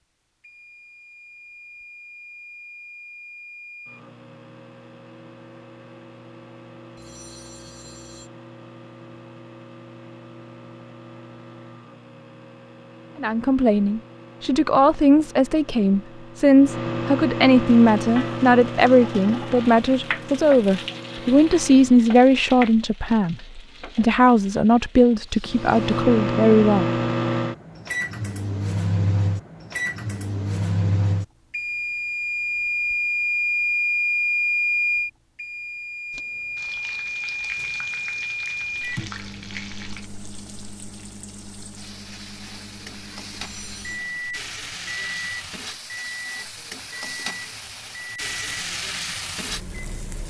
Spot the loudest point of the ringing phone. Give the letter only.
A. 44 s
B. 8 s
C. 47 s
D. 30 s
A.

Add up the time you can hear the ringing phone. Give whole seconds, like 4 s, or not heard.
2 s.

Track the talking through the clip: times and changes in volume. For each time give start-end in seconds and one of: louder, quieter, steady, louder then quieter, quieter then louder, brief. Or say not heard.
13.2-26.9 steady.